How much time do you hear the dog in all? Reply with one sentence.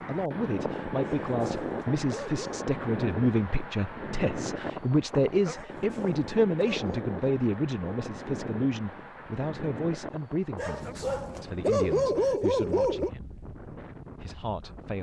You can hear the dog for 6 seconds altogether.